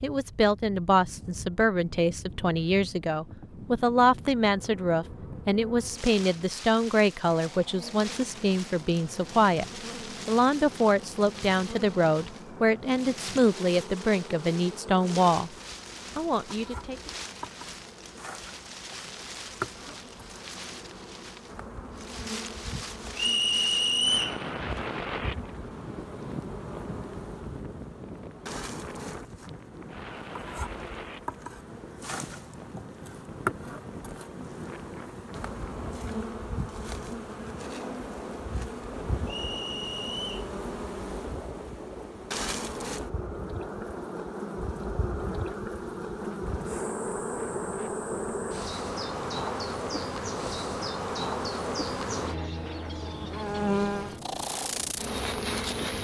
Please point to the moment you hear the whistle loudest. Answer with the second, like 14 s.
24 s.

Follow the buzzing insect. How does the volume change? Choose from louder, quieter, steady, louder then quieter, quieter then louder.
louder.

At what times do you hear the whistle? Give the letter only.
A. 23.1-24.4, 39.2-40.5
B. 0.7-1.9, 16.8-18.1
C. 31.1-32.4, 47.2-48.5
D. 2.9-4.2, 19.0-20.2
A.